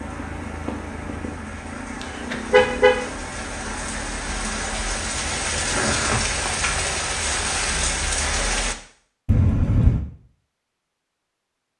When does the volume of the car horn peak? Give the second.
3 s.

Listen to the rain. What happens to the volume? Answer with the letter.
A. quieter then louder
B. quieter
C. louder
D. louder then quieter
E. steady
C.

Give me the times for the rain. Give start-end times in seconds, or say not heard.
0.0-8.8.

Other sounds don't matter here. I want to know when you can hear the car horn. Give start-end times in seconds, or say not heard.
2.0-3.0, 9.2-10.1.